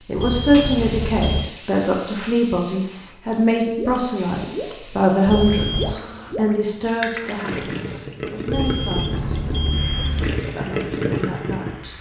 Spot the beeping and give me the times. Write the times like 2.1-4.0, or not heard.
0.1-1.5, 5.2-6.0, 8.4-10.4.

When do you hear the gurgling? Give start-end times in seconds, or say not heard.
3.6-11.7.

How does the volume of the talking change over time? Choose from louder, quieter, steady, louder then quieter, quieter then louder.
quieter.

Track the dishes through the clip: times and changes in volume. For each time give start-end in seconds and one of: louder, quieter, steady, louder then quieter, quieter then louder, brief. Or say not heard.
not heard.